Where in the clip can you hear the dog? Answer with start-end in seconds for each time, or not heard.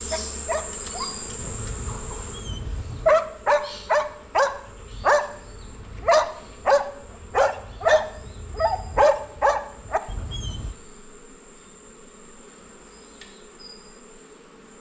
0.1-10.8.